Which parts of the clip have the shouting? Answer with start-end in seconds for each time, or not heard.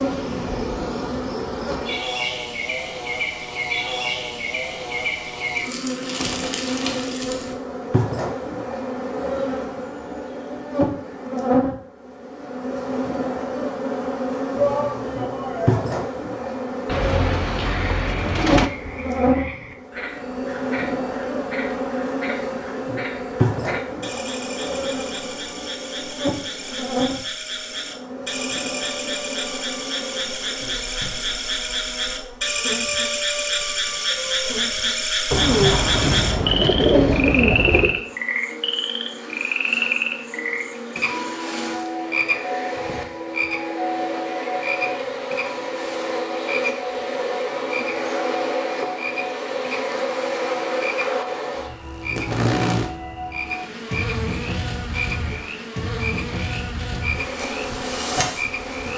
14.6-15.9.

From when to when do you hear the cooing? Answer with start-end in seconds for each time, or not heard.
16.9-18.7, 35.3-38.0.